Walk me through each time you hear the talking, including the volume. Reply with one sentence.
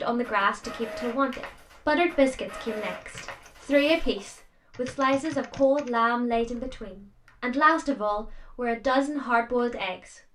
You can hear the talking from 0.0 to 10.2 s, at a steady volume.